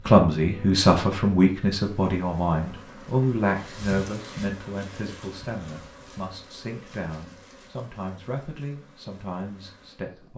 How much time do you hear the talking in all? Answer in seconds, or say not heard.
10 s.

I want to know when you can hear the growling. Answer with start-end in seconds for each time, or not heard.
not heard.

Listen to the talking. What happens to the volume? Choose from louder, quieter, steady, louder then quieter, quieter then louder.
quieter.